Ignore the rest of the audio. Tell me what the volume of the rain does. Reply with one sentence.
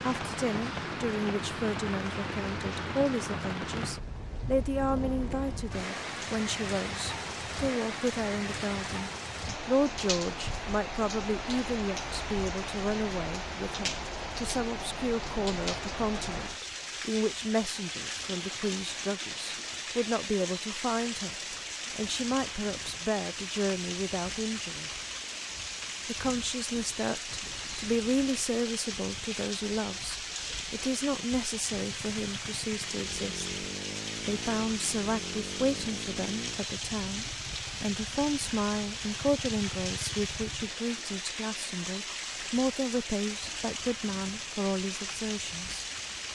The loudness of the rain stays about the same.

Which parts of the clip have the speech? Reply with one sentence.
You can hear the speech from 0.0 to 25.0 s, from 26.1 to 33.5 s and from 34.2 to 45.9 s.